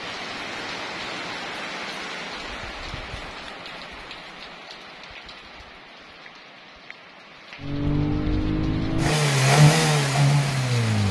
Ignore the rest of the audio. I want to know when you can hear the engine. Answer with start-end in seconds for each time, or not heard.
7.6-11.0.